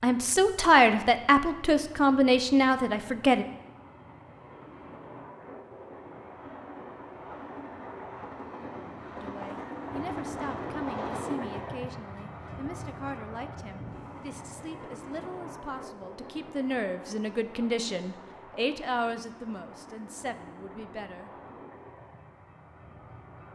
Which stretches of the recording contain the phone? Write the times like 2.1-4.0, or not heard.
not heard.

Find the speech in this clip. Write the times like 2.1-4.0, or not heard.
0.0-3.5, 9.2-21.3.